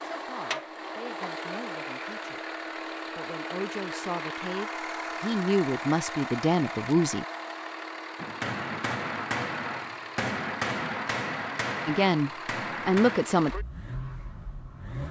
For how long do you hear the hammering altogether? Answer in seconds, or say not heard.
5 s.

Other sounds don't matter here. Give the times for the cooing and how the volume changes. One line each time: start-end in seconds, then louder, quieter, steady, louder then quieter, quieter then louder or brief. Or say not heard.
not heard.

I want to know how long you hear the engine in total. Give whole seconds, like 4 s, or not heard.
15 s.